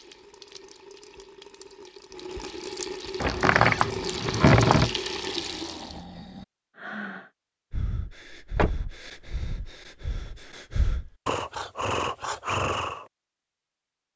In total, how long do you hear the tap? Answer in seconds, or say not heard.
6 s.